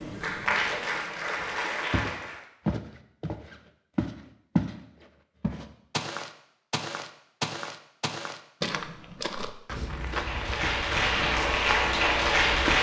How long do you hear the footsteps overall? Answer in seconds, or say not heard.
11 s.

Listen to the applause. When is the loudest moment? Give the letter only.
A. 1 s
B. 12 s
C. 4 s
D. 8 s
B.